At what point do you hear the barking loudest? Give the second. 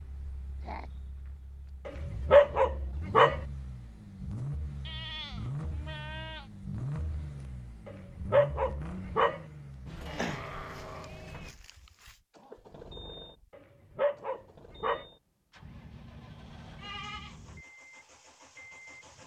2 s.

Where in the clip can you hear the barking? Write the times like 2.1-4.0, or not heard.
1.9-3.4, 7.8-9.4, 13.5-15.1.